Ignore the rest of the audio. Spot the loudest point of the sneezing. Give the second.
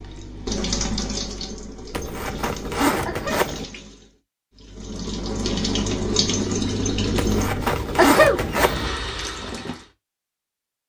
8 s.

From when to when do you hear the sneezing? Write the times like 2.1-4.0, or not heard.
3.0-3.5, 8.0-8.4.